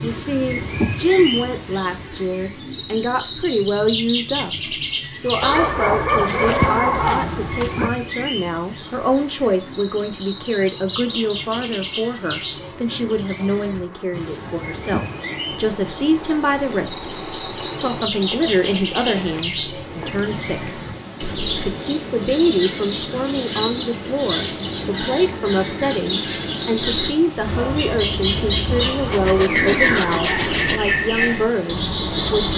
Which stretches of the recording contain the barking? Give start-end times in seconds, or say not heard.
5.4-7.9, 28.6-30.4.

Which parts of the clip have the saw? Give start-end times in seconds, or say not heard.
29.1-30.8.